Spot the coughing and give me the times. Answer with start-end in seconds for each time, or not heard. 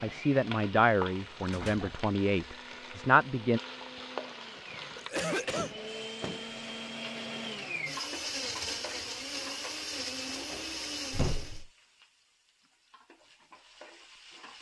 4.5-5.8.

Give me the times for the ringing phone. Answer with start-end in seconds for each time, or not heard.
not heard.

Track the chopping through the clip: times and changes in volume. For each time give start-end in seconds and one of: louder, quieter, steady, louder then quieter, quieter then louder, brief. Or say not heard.
not heard.